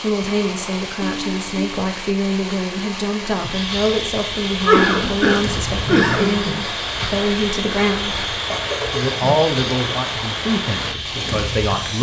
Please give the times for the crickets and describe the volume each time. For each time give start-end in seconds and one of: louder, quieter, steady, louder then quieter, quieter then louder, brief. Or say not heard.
3.4-11.9 steady.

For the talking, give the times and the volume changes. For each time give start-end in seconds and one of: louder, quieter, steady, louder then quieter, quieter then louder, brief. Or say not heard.
0.0-11.9 steady.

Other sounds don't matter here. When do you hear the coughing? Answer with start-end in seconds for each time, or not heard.
1.0-1.8, 4.6-6.3, 8.3-9.1.